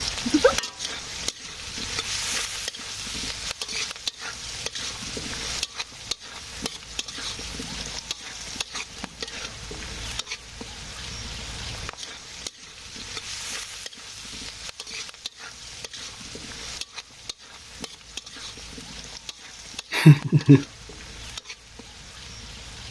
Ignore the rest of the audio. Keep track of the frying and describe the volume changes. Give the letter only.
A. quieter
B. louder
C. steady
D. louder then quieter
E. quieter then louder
A.